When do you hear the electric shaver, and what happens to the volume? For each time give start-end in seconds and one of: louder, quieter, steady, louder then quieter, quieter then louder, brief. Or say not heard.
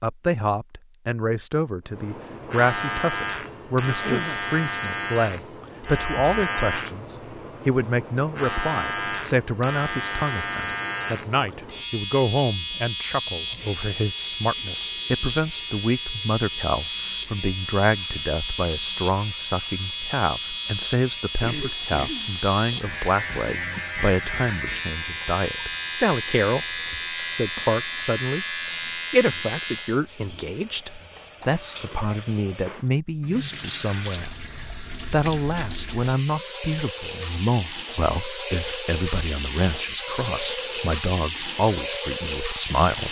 1.9-30.0 steady.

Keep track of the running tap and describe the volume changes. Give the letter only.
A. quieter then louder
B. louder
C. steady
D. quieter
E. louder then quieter
B.